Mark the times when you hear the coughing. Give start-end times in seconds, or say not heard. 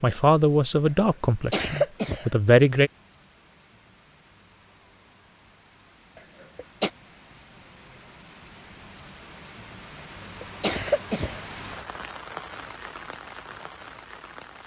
1.3-2.3, 6.2-6.9, 10.4-11.4.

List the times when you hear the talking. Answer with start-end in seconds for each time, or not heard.
0.0-2.9.